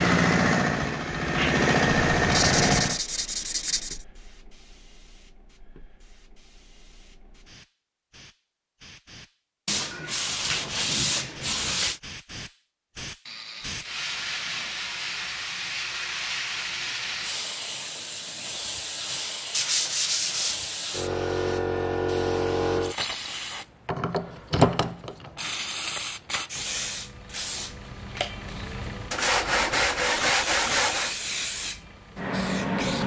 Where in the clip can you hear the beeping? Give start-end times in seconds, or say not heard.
not heard.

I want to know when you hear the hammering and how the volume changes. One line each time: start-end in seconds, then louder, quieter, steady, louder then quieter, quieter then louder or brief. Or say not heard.
not heard.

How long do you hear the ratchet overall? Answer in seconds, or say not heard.
3 s.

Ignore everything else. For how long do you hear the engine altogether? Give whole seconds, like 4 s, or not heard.
3 s.